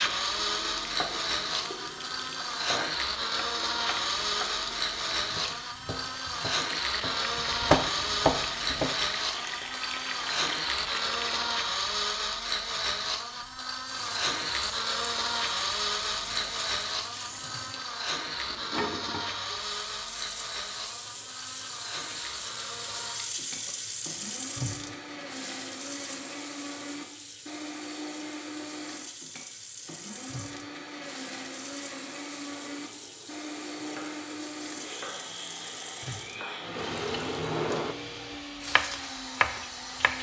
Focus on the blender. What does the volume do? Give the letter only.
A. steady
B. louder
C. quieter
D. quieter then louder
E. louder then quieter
C.